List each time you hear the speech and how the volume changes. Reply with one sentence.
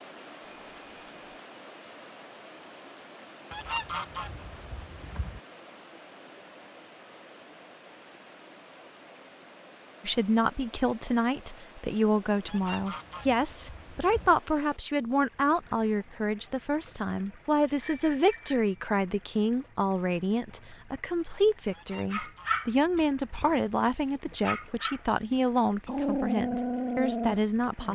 The speech can be heard from 10.1 to 27.9 s, at a steady volume.